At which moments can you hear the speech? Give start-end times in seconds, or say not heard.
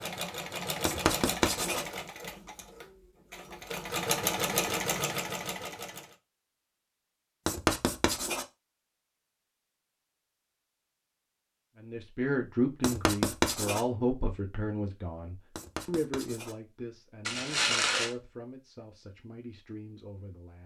11.8-20.6.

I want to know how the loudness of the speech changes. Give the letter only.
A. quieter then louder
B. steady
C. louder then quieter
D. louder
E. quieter
E.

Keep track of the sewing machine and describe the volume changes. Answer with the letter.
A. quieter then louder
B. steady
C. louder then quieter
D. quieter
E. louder
A.